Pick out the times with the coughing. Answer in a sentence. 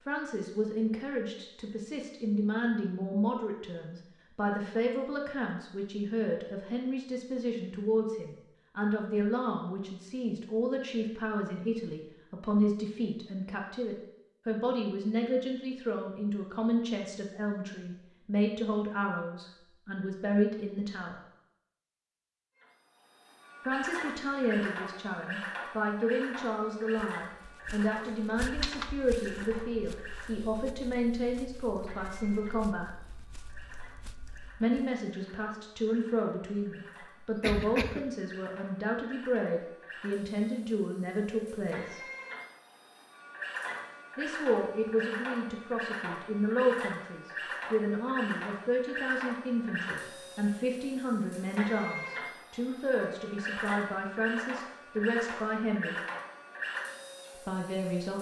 The coughing can be heard from 37.2 to 38.0 s.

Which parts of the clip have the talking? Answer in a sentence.
The talking can be heard from 0.1 to 21.2 s, from 23.6 to 32.9 s, from 34.6 to 42.0 s, from 44.1 to 56.0 s and from 57.5 to 58.1 s.